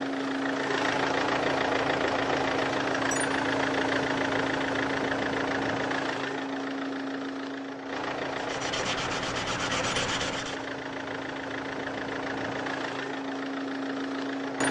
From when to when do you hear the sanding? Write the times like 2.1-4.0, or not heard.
8.3-10.7.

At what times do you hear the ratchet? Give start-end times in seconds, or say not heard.
not heard.